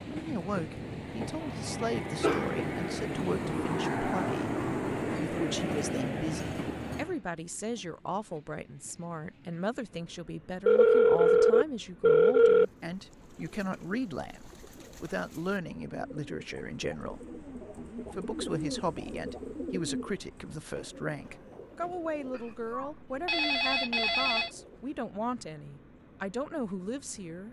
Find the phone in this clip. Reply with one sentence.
The phone can be heard from 1.6 to 3.0 s, from 10.7 to 12.7 s and from 22.3 to 24.5 s.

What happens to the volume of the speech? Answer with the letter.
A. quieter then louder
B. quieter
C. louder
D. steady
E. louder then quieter
D.